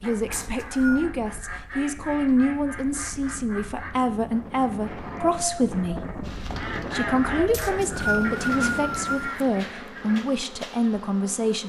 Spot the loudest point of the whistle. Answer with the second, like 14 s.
8 s.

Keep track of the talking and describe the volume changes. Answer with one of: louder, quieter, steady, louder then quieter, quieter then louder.
steady.